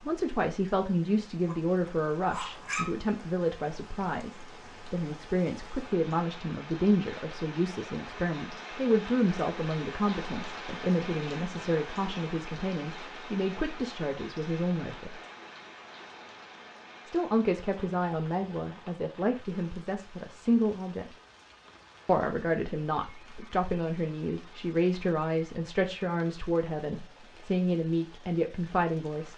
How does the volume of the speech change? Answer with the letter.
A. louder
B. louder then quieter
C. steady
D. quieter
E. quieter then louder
C.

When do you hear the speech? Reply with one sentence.
The speech can be heard from 0.1 to 15.2 s, from 17.1 to 21.1 s and from 22.1 to 29.3 s.